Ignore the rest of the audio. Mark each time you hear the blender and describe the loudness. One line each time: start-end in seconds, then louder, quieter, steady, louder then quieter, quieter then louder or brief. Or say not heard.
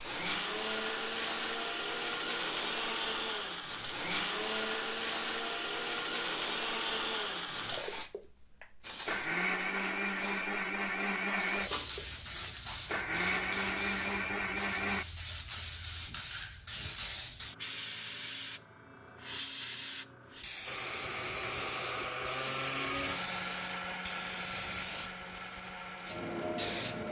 0.0-15.1 steady
20.6-27.0 quieter.